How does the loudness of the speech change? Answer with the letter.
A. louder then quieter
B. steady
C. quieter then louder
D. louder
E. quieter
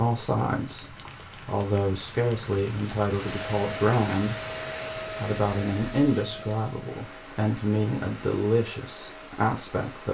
B.